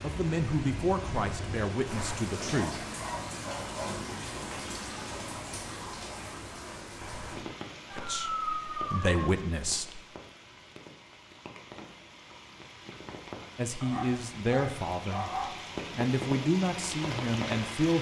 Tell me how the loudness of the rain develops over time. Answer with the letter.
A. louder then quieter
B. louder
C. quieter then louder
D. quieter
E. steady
C.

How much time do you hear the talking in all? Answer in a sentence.
The talking can be heard for 9 seconds in total.